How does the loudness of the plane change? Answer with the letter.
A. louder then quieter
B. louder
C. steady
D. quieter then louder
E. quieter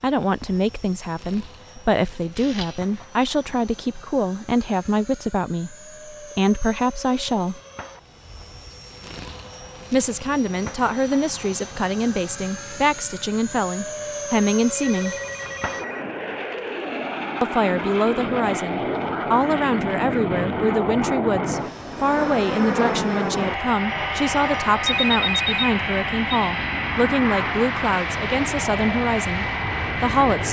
B.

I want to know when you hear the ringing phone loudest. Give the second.
25 s.